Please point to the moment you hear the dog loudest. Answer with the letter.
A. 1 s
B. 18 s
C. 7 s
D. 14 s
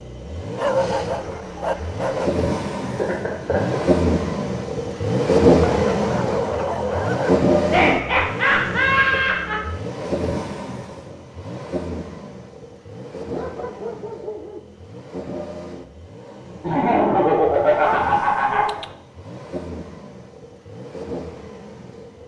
A.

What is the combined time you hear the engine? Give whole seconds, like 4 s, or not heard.
22 s.